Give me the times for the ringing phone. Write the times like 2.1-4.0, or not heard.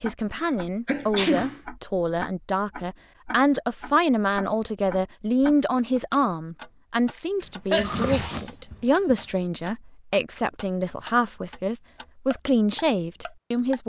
not heard.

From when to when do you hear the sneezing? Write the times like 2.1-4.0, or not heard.
0.4-1.6, 7.4-9.2.